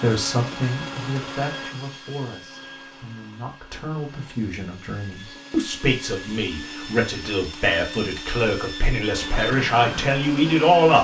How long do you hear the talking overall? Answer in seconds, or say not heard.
11 s.